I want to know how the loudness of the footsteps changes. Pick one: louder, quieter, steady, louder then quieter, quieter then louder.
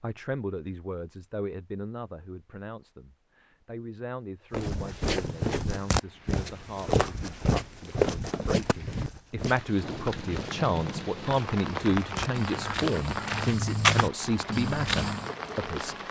quieter then louder.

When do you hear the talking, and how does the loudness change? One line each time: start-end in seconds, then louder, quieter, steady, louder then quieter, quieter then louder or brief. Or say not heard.
0.0-16.0 louder.